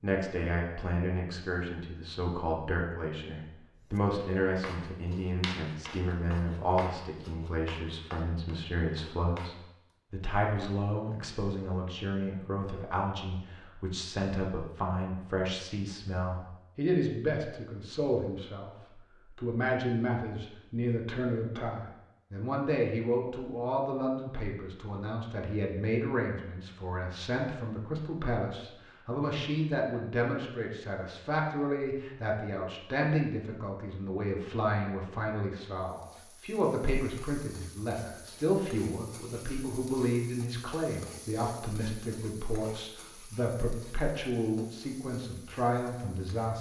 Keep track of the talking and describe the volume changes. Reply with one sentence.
The loudness of the talking stays about the same.